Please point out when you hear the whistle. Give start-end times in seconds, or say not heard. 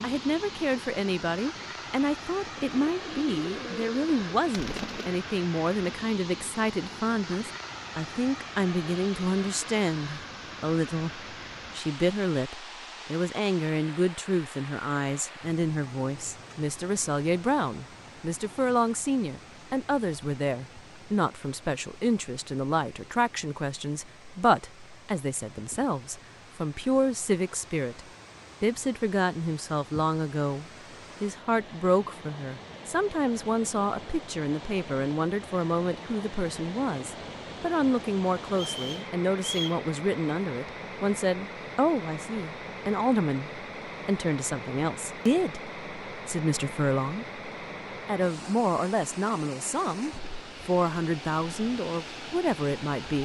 38.5-39.8.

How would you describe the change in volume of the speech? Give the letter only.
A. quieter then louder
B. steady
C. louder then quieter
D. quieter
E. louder
B.